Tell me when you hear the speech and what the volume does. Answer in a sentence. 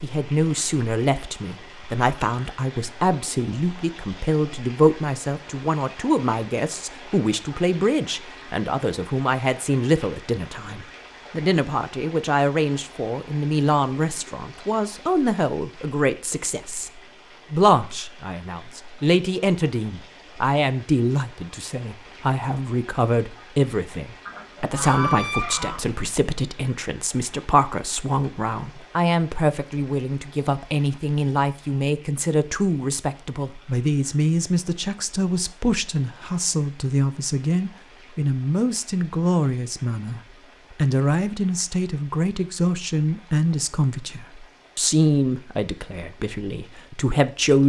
The speech can be heard from 0.0 to 16.9 s, at a steady volume; and from 17.5 to 47.6 s, at a steady volume.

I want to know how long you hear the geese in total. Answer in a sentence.
You can hear the geese for 2 seconds altogether.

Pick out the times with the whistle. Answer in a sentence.
You can't hear the whistle here.